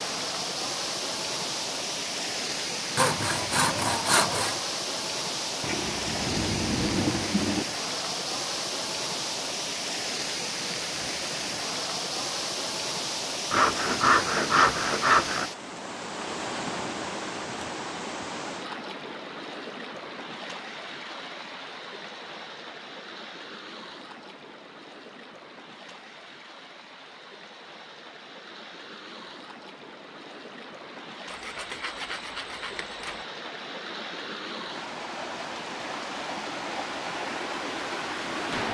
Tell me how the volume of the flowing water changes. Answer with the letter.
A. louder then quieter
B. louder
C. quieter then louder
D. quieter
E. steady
C.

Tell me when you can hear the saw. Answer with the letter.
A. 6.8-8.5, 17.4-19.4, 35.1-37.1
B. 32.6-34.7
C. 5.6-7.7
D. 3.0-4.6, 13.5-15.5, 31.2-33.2
D.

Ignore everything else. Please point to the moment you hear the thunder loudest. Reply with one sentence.
The loudest moment of the thunder is at 7 seconds.